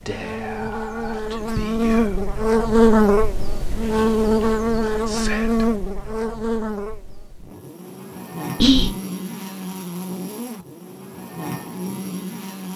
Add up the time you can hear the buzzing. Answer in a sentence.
The buzzing can be heard for 13 seconds in total.